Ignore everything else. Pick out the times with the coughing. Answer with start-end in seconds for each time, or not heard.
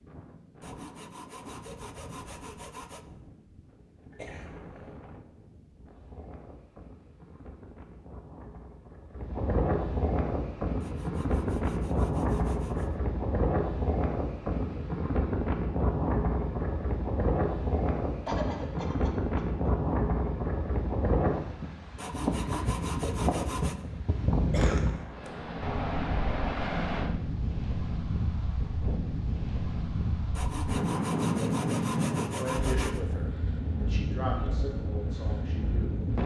4.1-5.0, 18.2-19.7, 24.4-25.3.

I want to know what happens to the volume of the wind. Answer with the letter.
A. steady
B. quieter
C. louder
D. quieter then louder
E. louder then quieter
C.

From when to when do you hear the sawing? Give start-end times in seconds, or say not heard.
0.6-3.0, 10.8-13.0, 21.9-23.9, 30.4-33.0.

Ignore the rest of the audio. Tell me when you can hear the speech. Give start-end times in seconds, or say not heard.
32.4-36.0.